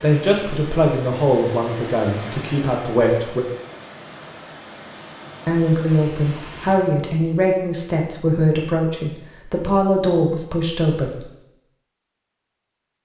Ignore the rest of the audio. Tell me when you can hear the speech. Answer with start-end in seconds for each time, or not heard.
0.0-3.5, 5.5-11.2.